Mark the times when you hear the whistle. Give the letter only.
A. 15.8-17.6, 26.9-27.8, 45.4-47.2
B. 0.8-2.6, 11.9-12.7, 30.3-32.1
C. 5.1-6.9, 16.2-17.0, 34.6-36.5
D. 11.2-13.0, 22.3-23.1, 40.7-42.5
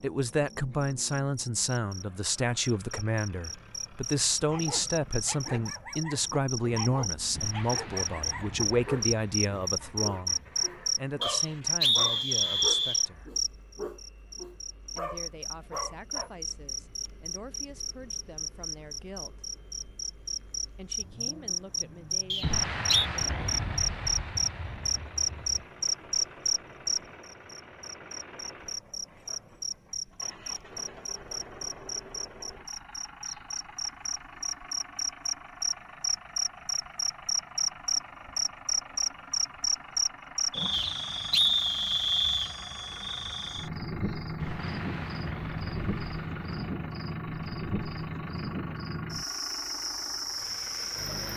D.